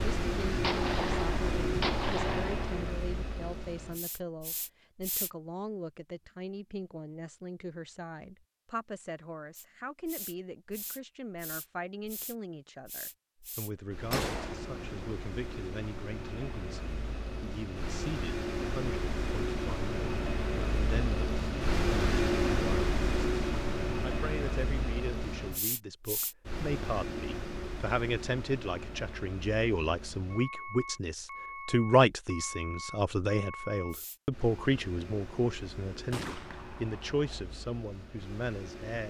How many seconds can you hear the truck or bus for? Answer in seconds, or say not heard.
35 s.